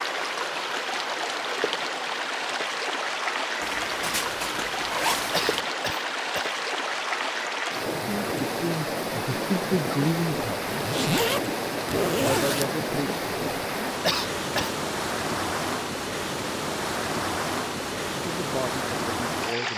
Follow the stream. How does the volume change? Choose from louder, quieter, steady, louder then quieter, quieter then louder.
steady.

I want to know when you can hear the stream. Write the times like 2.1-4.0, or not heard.
0.0-19.7.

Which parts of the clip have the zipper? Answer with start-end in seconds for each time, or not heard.
3.6-5.6, 10.6-12.7.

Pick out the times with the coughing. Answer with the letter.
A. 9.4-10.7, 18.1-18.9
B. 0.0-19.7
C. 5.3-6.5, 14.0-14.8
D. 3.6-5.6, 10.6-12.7
C.